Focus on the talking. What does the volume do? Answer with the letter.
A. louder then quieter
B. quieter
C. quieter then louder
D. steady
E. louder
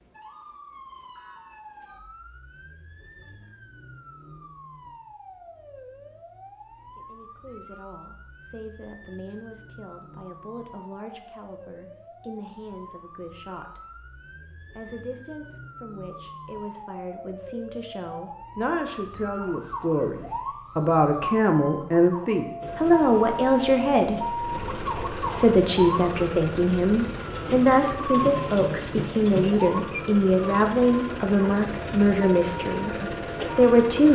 E.